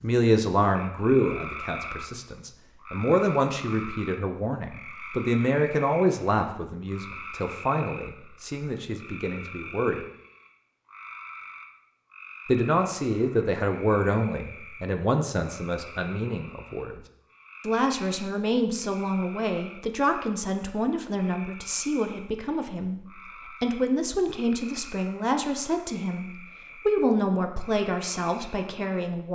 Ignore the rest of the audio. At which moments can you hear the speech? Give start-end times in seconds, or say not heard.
0.0-10.0, 12.4-17.0, 17.6-23.0, 23.6-29.3.